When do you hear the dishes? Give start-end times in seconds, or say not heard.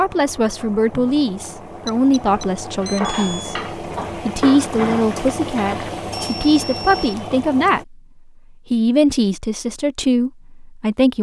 2.8-5.9.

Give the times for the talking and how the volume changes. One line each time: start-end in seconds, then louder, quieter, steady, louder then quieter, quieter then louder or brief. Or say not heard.
0.0-8.0 steady
8.7-11.1 brief.